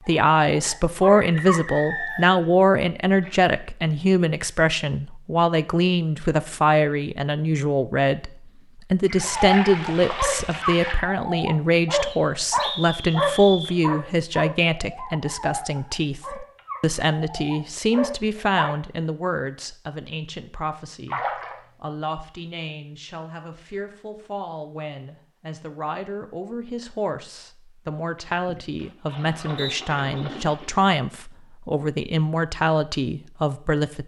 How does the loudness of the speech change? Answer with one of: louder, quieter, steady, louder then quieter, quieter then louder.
quieter then louder.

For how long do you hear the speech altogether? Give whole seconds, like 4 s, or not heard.
33 s.